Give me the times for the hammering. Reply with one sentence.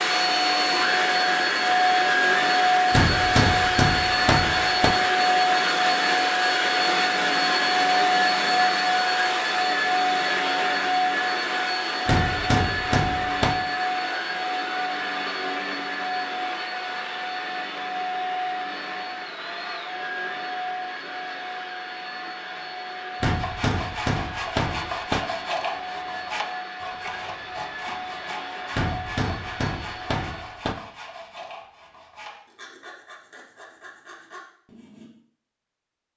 You can hear the hammering from 2.9 to 5.0 s, from 12.1 to 13.6 s, from 23.2 to 25.2 s and from 28.8 to 30.8 s.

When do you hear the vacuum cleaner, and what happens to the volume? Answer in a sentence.
The vacuum cleaner can be heard from 0.0 to 30.7 s, getting quieter.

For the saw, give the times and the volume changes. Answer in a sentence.
The saw can be heard from 23.2 to 35.1 s, getting quieter.